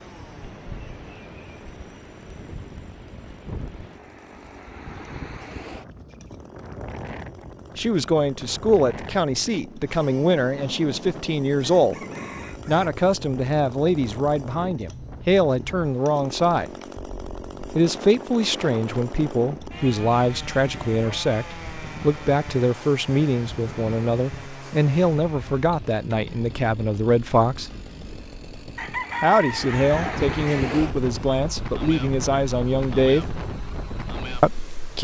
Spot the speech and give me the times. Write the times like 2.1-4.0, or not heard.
7.8-11.9, 12.7-16.7, 17.8-27.7, 29.2-33.4, 34.4-35.0.